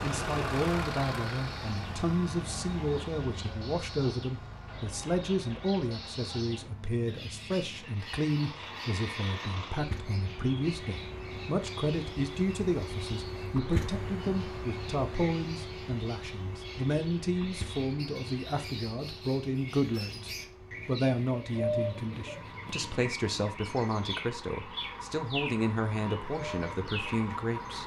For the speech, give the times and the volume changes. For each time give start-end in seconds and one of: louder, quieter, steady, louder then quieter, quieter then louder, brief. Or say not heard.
0.0-27.8 steady.